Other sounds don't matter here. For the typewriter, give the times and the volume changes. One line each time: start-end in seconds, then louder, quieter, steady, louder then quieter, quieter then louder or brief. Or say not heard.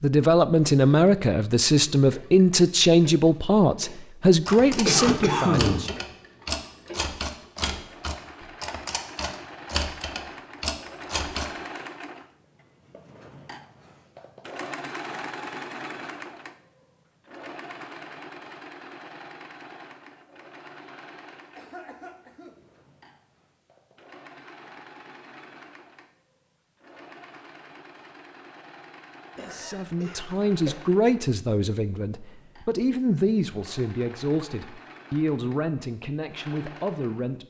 4.2-11.5 steady.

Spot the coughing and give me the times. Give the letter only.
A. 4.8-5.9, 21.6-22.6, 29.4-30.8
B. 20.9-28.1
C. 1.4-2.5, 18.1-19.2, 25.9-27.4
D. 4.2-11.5
A.